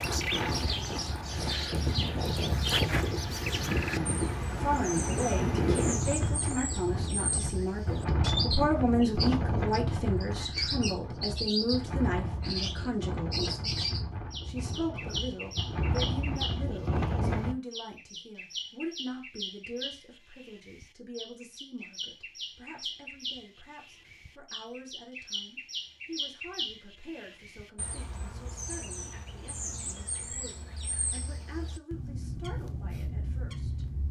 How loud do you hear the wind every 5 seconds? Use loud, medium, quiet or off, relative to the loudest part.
loud, loud, medium, loud, off, off, off.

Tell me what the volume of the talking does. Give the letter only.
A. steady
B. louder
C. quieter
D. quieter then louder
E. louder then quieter
C.